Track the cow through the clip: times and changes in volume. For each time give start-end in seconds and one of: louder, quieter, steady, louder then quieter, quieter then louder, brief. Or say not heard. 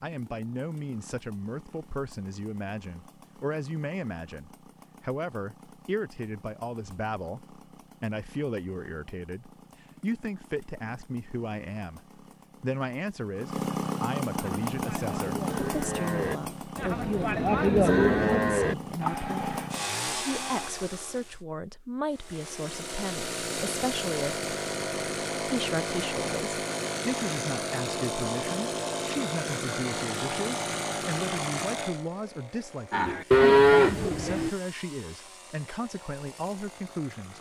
14.4-20.7 louder then quieter
32.9-34.5 brief.